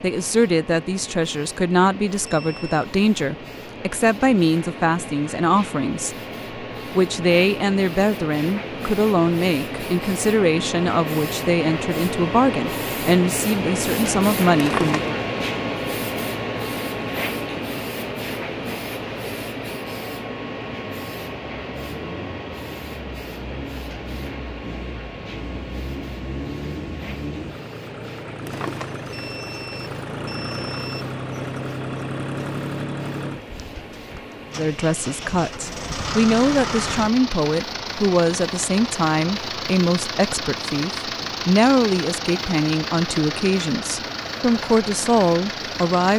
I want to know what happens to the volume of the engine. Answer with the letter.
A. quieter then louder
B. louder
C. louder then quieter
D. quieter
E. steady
B.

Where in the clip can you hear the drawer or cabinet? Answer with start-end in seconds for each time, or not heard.
14.6-15.2, 28.4-29.1.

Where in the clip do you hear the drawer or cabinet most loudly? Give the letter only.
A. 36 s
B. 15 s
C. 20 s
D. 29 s
B.